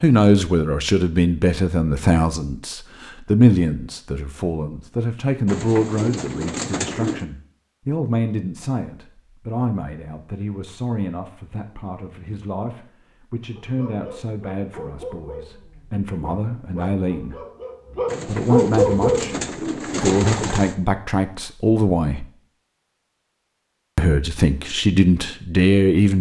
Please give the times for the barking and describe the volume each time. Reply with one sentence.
You can hear the barking from 13.5 to 19.4 s, getting louder.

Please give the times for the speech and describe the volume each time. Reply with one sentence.
You can hear the speech from 0.0 to 17.4 s, getting quieter; from 18.2 to 22.2 s, getting quieter then louder; and briefly from 23.9 to 26.1 s.